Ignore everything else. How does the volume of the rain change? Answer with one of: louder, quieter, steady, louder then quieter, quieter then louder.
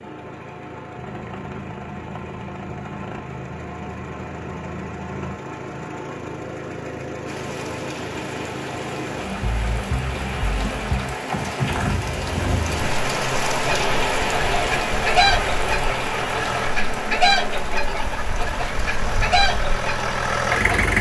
louder then quieter.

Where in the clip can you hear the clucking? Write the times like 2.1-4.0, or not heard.
13.6-20.9.